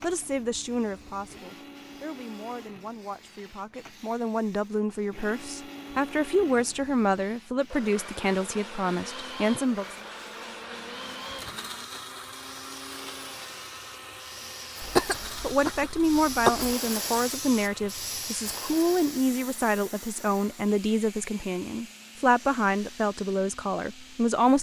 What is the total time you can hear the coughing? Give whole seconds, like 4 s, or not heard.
2 s.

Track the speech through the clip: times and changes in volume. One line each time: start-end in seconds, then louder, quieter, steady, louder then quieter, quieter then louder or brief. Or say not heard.
0.0-9.9 quieter then louder
15.4-24.5 steady.